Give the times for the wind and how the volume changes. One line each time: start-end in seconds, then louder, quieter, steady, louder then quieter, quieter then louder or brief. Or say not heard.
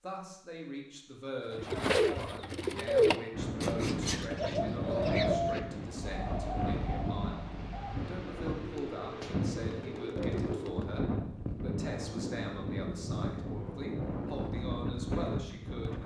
3.3-16.0 steady.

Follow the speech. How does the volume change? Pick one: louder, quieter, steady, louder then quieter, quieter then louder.
steady.